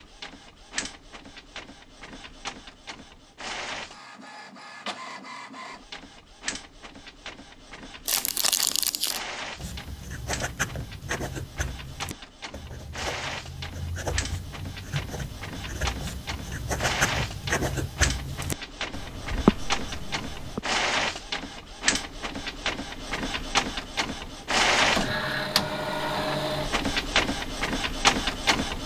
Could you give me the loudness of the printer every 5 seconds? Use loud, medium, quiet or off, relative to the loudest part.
quiet, quiet, quiet, medium, loud, loud.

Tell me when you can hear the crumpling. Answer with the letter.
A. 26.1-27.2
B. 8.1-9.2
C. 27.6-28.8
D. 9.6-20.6
B.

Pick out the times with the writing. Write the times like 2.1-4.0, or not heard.
9.6-20.6.